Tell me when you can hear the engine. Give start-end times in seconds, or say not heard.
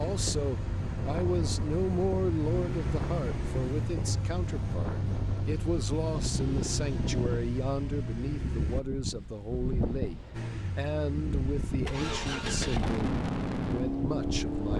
0.0-8.8, 10.3-14.7.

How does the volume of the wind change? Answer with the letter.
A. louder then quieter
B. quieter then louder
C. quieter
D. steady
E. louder
D.